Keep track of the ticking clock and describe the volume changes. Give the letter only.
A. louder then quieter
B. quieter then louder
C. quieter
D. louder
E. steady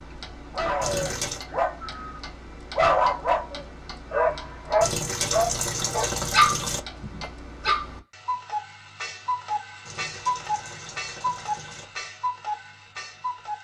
D.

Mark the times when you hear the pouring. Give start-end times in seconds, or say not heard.
0.8-1.4, 4.8-6.8, 9.8-11.8.